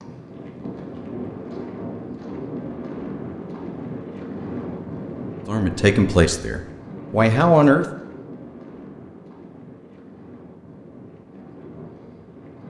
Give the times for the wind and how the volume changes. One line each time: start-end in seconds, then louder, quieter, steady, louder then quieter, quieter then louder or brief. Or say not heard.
0.0-12.6 quieter.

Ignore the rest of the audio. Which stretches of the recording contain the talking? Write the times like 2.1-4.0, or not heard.
5.5-7.8.